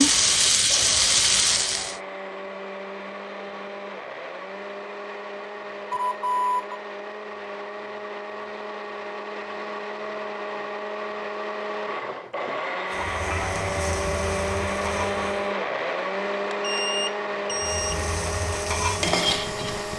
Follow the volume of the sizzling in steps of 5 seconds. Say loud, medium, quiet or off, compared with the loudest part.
loud, off, quiet, medium.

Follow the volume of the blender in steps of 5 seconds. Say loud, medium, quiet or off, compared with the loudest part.
medium, medium, loud, loud.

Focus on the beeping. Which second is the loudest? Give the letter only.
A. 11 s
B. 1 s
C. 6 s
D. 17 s
C.